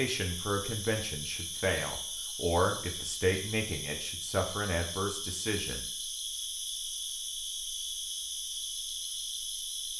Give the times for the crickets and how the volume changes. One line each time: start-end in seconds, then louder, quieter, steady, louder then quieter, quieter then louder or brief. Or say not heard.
0.0-9.9 steady.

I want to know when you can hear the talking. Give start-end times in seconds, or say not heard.
0.0-5.8.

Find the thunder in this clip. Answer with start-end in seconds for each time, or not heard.
not heard.